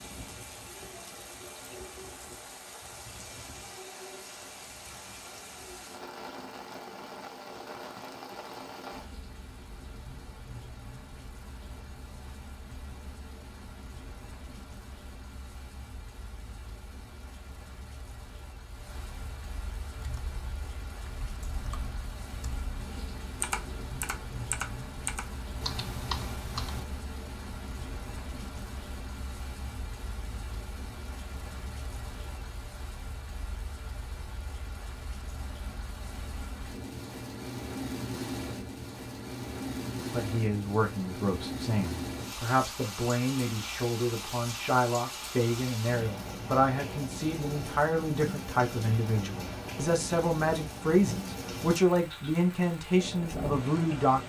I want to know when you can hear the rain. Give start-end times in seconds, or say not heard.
0.0-54.2.